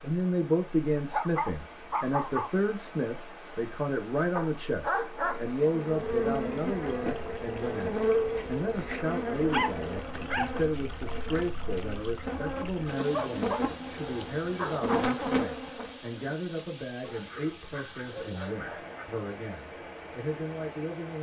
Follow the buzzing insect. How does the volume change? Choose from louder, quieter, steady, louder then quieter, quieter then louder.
quieter then louder.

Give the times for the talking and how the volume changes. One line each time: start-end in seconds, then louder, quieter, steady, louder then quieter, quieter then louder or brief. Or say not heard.
0.0-21.1 quieter.